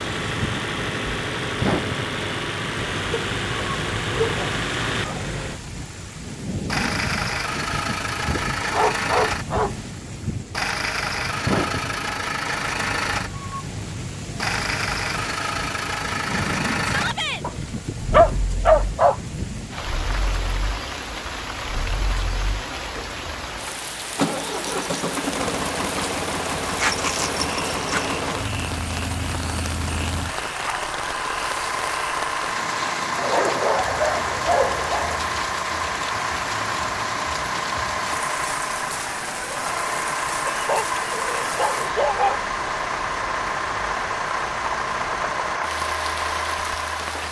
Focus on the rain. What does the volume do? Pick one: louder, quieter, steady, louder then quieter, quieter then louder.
steady.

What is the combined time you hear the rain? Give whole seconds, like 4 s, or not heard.
47 s.